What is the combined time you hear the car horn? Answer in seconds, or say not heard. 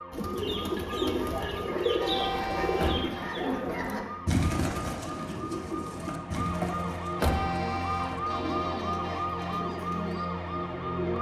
4 s.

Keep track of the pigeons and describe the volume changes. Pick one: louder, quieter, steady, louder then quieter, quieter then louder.
quieter.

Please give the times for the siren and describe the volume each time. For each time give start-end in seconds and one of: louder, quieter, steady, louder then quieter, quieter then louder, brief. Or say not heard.
0.0-11.1 louder.